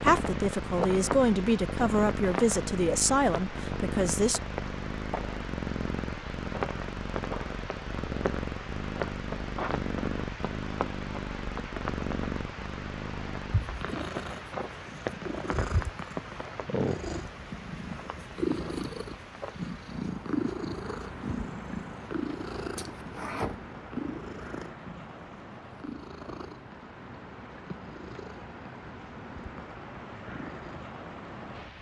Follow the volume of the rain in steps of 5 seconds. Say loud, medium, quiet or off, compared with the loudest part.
loud, loud, loud, loud, medium, medium, medium.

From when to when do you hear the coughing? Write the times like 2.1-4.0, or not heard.
22.8-23.6.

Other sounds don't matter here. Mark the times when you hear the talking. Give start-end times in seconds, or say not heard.
0.0-4.4.